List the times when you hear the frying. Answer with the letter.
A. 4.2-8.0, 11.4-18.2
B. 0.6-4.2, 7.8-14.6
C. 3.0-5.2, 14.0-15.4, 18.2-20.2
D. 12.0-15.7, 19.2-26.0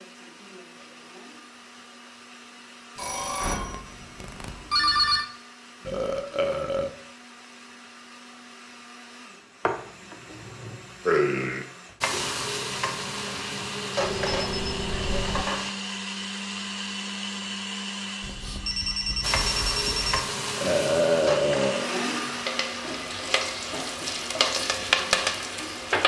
D.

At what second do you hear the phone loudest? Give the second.
5 s.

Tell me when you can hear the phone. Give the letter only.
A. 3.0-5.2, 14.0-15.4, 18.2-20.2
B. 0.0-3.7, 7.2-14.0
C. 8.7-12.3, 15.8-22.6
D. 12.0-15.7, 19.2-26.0
A.